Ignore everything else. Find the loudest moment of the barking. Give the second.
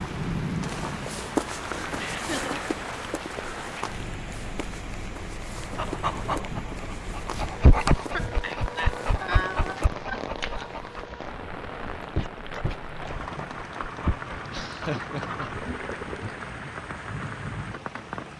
8 s.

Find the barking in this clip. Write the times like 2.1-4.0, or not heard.
5.5-16.6.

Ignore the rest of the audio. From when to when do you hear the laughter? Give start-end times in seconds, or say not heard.
1.9-2.6, 8.1-10.7, 14.4-15.5.